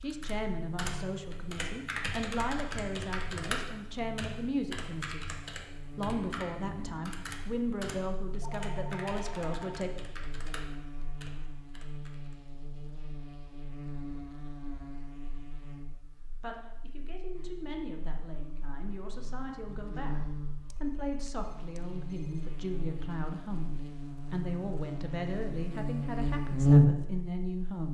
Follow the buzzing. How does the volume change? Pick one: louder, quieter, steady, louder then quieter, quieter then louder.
louder.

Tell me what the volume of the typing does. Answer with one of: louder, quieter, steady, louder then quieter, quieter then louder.
quieter.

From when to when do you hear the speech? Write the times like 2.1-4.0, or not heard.
0.0-5.3, 6.0-9.9, 16.4-27.9.